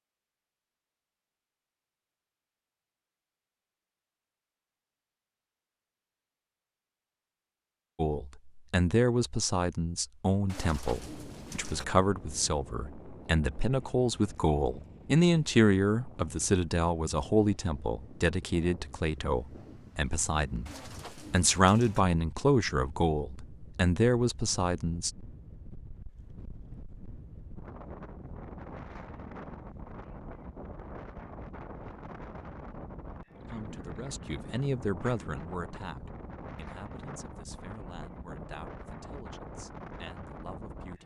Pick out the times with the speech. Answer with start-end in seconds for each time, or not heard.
8.0-25.1, 33.5-41.0.